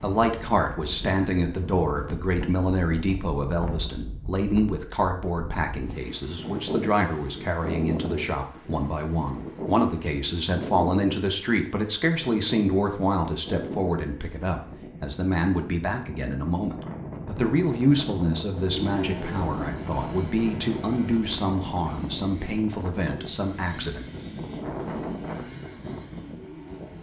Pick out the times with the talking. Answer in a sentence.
You can hear the talking from 0.0 to 24.1 s.